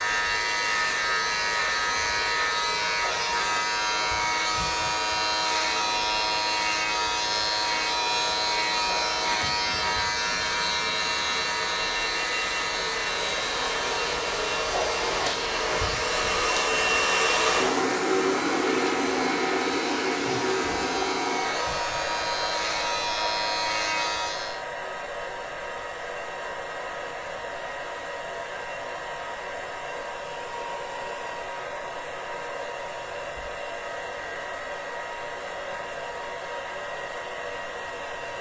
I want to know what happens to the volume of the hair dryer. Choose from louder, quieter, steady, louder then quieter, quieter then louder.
louder then quieter.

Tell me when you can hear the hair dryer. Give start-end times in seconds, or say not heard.
0.0-38.3.